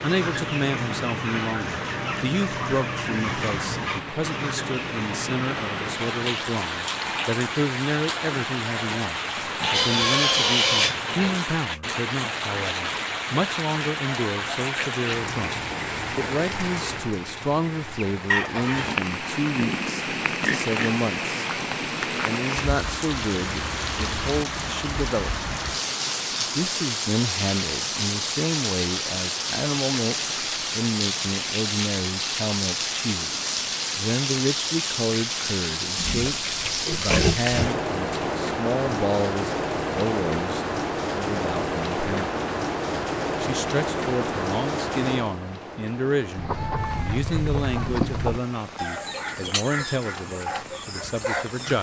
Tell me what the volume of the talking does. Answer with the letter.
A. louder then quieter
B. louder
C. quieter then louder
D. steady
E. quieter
D.